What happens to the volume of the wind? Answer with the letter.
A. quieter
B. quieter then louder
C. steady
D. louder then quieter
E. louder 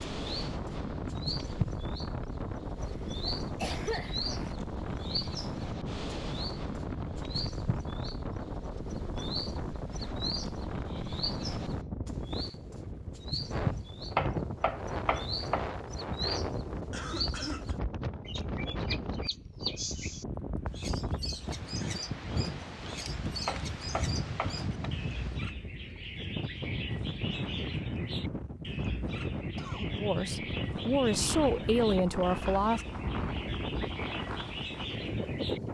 C.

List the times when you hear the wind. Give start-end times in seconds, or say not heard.
0.0-35.6.